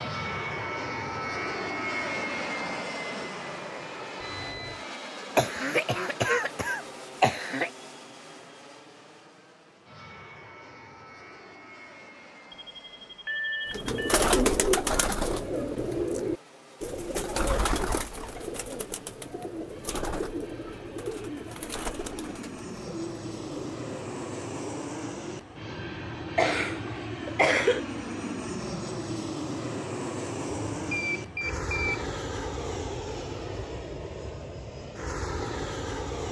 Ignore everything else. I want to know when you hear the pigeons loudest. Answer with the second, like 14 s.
14 s.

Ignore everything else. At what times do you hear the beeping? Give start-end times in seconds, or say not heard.
4.2-4.8, 12.5-14.2, 30.4-32.0.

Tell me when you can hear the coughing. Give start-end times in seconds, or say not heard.
5.3-7.7, 26.4-27.8.